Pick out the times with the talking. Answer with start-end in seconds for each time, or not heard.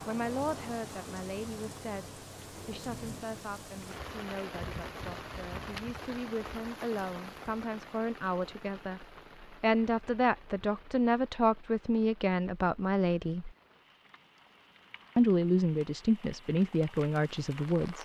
0.1-13.5, 15.2-18.0.